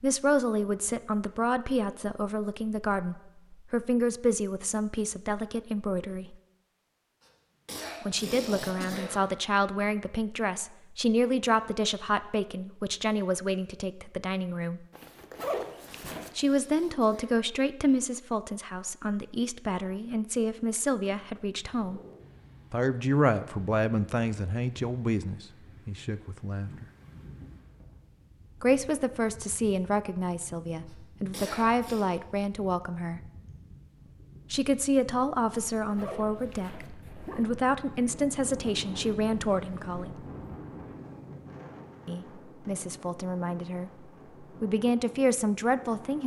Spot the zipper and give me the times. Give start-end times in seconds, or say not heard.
14.9-16.3, 35.8-37.5.